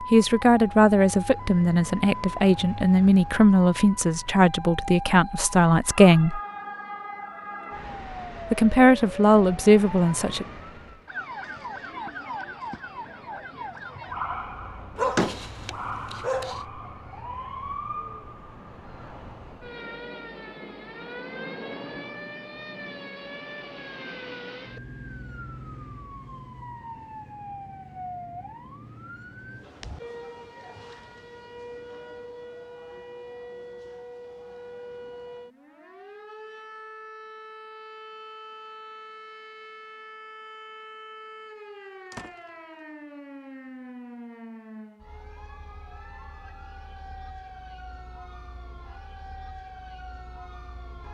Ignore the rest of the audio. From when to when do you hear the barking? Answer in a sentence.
You can hear the barking from 14.9 to 16.6 s.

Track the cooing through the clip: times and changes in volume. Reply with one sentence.
The cooing can't be heard in this clip.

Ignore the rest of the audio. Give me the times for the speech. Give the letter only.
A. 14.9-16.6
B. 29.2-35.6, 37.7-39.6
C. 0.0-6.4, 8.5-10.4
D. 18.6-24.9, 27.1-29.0
C.